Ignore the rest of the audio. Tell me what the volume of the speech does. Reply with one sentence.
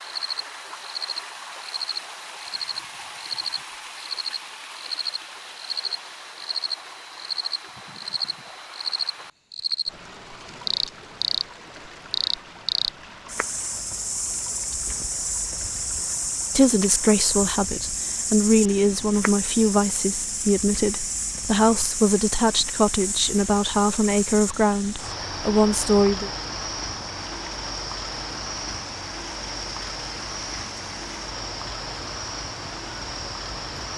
The loudness of the speech stays about the same.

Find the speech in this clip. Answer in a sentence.
You can hear the speech from 16.6 to 26.3 s.